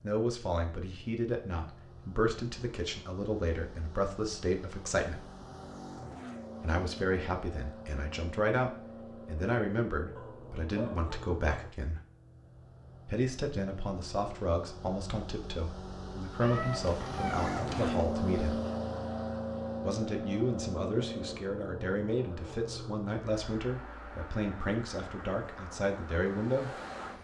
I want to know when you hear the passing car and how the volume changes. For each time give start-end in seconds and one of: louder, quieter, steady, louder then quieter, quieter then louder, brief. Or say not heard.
0.0-27.1 louder then quieter.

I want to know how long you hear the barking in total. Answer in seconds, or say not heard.
3 s.